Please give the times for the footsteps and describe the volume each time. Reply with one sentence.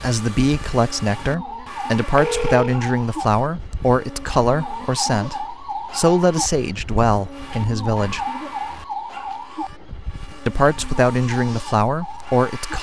The footsteps can't be heard in this clip.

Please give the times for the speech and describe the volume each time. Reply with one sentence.
The speech can be heard from 0.0 to 8.2 s, at a steady volume; and briefly from 10.4 to 12.7 s.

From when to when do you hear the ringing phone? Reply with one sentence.
The ringing phone can be heard from 2.1 to 2.8 s.